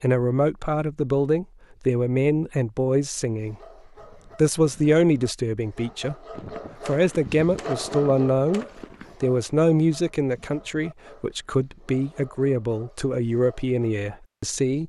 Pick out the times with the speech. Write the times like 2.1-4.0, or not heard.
0.0-3.5, 4.3-6.2, 6.8-14.8.